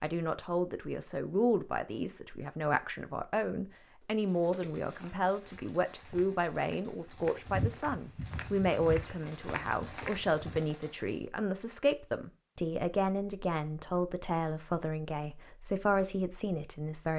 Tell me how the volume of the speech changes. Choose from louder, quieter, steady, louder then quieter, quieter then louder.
steady.